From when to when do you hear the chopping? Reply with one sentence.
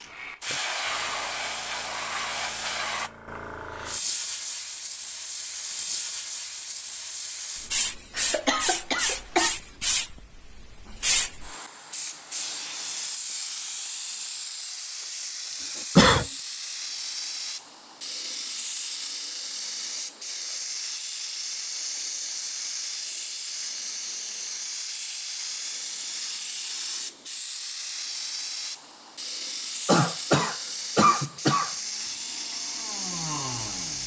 The chopping can't be heard in this clip.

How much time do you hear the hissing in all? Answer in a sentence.
The hissing can be heard for 34 seconds in total.